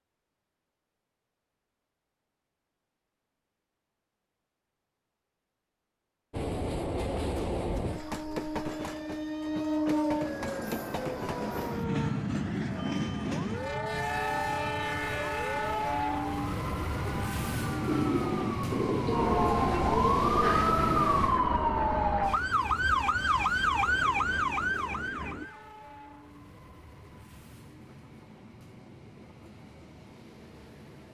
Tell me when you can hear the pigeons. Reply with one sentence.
You can hear the pigeons from 17.9 to 25.4 s.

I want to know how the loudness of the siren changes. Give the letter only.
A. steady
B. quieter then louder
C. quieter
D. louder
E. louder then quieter
D.